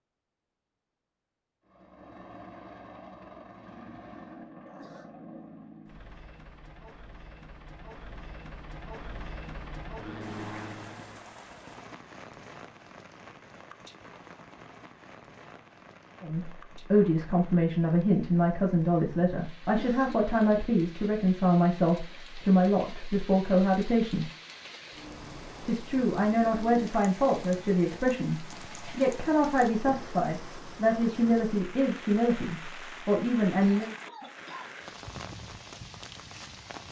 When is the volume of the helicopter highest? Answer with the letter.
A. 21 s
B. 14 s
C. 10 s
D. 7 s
C.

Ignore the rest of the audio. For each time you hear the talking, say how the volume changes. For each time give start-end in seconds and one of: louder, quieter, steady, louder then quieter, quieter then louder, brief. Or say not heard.
16.2-24.2 steady
25.6-34.0 steady.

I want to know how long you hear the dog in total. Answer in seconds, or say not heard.
not heard.